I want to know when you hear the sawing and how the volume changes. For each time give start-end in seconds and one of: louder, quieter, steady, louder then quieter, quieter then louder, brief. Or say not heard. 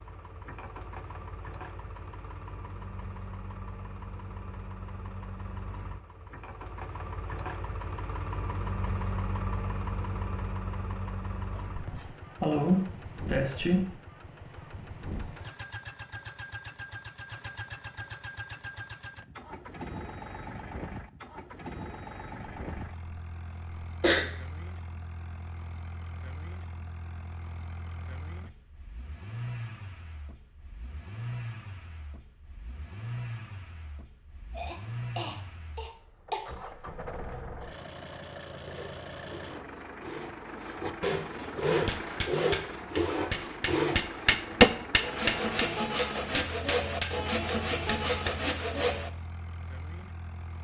38.6-49.1 louder.